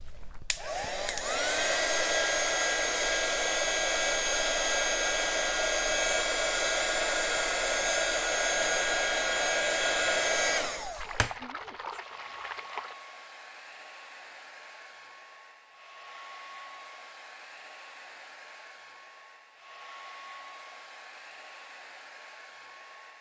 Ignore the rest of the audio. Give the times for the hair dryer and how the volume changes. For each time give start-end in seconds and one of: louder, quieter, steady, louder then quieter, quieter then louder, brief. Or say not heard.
0.0-23.1 quieter.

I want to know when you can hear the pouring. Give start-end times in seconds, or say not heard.
10.9-12.9.